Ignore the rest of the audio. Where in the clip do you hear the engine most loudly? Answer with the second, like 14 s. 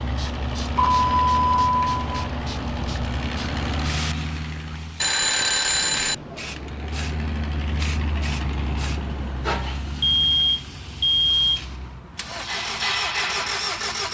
13 s.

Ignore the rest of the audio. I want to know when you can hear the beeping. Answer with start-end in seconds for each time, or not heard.
0.8-2.3, 5.0-6.2, 10.0-11.6.